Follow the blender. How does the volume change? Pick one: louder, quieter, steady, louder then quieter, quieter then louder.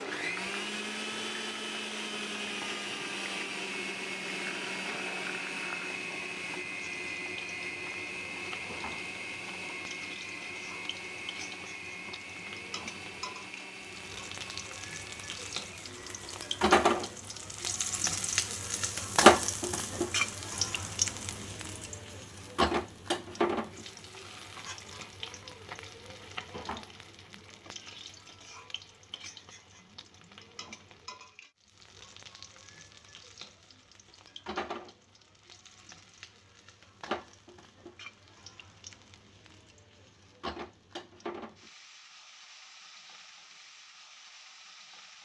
quieter.